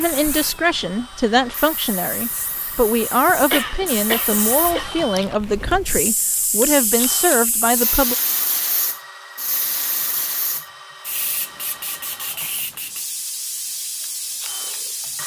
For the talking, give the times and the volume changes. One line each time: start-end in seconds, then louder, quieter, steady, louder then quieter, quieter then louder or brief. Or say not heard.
0.0-8.2 steady.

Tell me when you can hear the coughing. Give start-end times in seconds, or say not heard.
3.5-4.8.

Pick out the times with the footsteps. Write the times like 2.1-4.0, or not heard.
not heard.